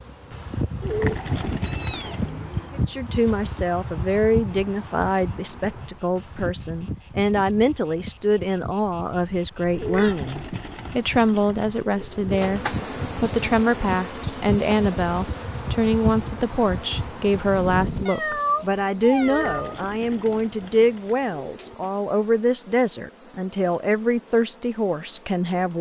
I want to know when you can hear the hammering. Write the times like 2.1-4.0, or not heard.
not heard.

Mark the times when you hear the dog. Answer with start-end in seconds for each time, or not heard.
not heard.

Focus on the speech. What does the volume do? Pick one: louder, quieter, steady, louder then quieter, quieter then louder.
steady.